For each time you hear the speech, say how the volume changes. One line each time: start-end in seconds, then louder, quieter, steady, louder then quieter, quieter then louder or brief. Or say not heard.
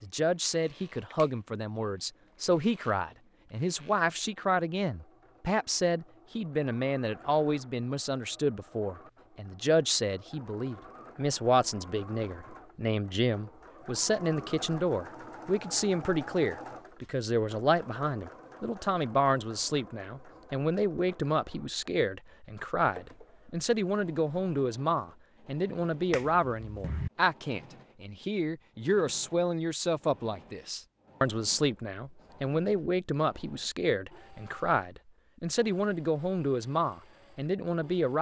0.0-38.1 steady.